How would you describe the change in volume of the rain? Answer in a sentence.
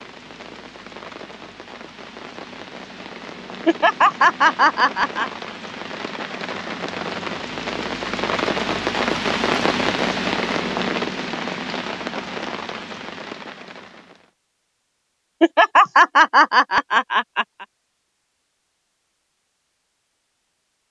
The volume of the rain goes up, then down.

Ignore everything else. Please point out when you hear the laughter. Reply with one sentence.
You can hear the laughter from 3.6 to 5.3 s and from 15.4 to 17.6 s.